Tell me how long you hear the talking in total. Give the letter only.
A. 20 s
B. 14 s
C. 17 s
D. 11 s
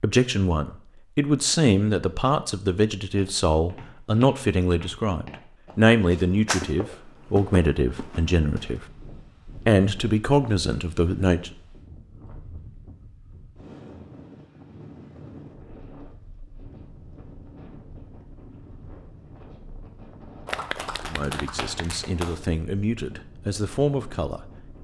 B.